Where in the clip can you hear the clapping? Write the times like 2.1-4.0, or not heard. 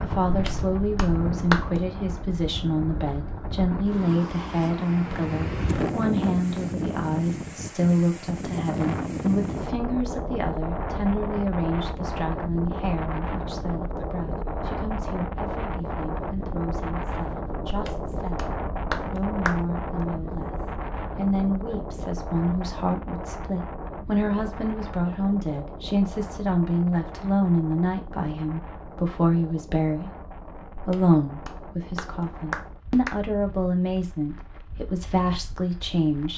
0.2-1.9, 17.6-19.6, 30.8-33.1.